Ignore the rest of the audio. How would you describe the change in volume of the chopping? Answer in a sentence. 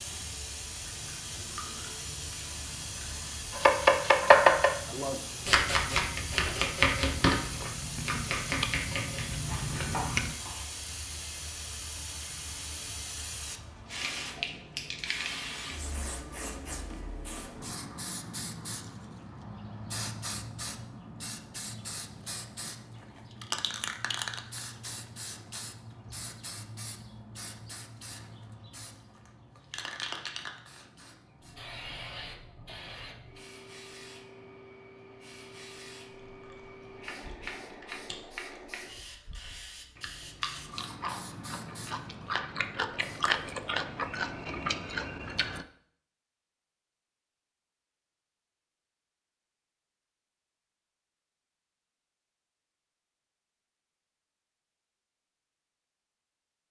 The loudness of the chopping goes down.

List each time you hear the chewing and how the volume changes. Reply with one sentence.
The chewing can be heard from 0.8 to 10.3 s, getting louder; and from 36.2 to 45.6 s, getting louder.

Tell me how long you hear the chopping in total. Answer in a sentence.
You can hear the chopping for 7 seconds altogether.